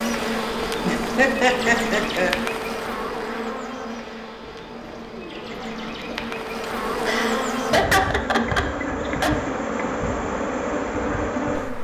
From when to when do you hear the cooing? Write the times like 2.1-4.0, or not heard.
4.4-6.5.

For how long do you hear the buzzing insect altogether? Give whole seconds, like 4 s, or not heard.
12 s.